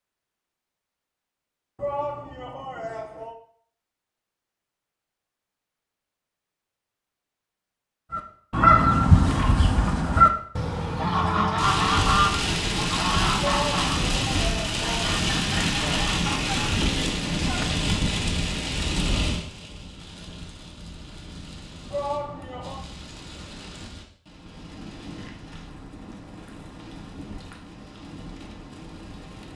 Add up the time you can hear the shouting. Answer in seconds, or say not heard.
4 s.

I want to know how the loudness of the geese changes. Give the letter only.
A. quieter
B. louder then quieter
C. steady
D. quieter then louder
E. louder
A.